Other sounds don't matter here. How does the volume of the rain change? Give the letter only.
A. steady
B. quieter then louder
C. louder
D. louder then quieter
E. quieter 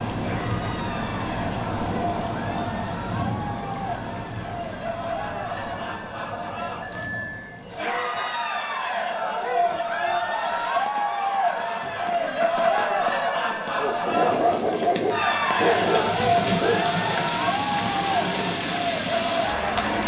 B.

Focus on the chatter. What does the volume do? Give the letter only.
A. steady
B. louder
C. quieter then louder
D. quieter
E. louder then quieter
B.